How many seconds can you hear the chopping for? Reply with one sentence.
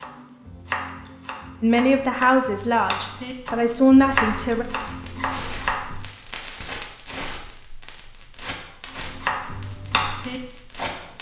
You can hear the chopping for 8 seconds altogether.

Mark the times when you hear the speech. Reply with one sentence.
You can hear the speech from 1.6 to 4.7 s.